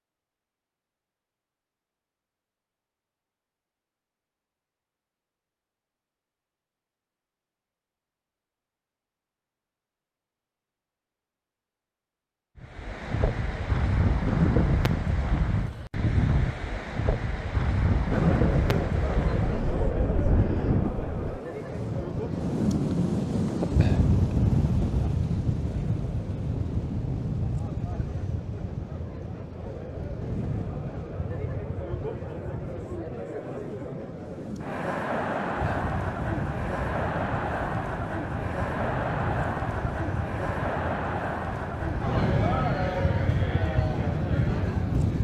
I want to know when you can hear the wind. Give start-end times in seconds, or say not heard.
12.6-45.1.